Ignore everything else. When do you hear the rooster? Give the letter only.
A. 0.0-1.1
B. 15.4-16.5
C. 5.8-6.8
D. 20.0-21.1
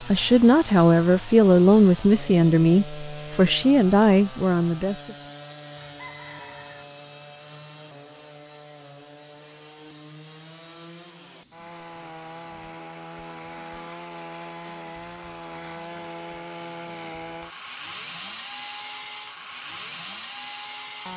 C.